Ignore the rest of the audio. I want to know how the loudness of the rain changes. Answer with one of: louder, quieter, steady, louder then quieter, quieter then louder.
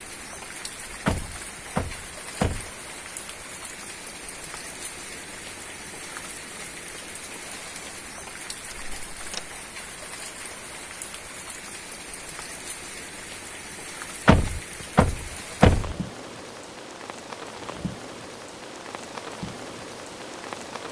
steady.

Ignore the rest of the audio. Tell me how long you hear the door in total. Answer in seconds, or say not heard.
4 s.